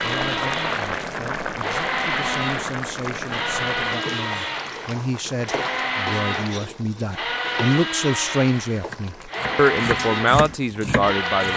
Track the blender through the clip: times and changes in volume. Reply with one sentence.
The blender can be heard from 0.0 to 11.5 s, at a steady volume.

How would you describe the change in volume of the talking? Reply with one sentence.
The volume of the talking goes up.